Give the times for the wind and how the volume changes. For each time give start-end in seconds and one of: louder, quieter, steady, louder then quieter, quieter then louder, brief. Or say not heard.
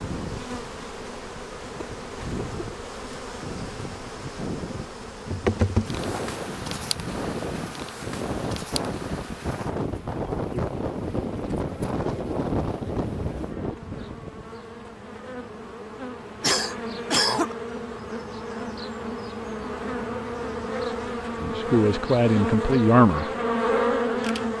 0.0-14.5 louder.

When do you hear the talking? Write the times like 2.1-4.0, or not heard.
21.4-23.2.